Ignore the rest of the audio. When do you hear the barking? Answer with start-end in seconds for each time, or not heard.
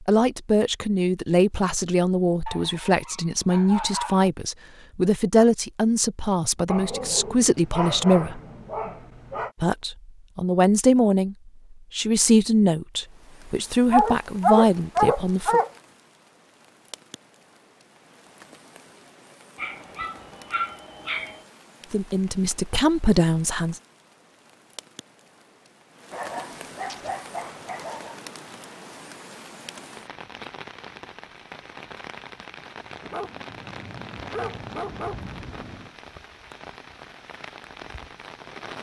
2.5-4.3, 6.7-9.5, 13.9-15.7, 19.6-21.4, 26.1-28.2, 33.0-36.0.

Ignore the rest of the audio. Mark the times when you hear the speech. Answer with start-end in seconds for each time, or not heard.
0.1-8.4, 9.6-15.6, 21.9-23.8.